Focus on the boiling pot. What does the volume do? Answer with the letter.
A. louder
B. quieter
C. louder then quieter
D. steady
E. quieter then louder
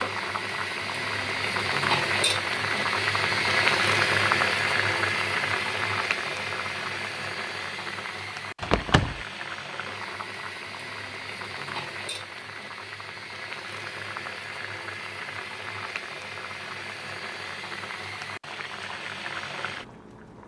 B.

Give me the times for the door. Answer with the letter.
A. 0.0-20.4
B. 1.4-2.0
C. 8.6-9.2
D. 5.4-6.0
C.